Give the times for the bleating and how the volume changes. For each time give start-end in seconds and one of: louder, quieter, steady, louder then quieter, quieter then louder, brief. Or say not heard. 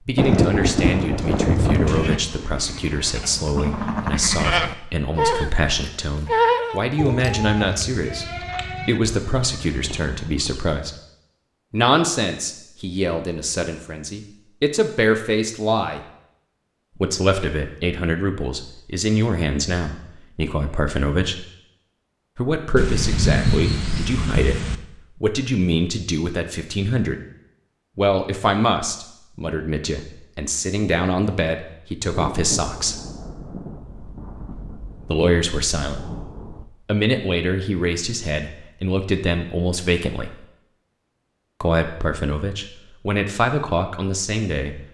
1.9-10.6 louder then quieter.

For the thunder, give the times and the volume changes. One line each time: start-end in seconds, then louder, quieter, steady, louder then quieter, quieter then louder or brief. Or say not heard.
0.1-2.2 brief
22.8-24.8 brief
32.0-36.6 quieter then louder.